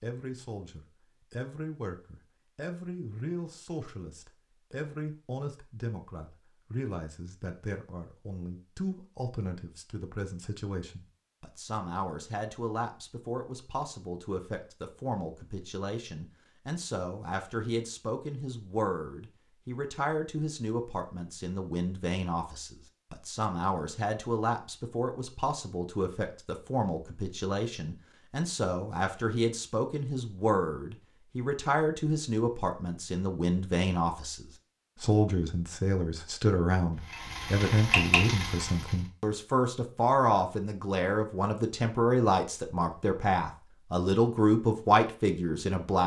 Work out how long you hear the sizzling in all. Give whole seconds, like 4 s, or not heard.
2 s.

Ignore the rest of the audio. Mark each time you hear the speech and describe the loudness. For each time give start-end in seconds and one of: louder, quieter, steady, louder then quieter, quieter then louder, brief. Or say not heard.
0.0-46.0 louder.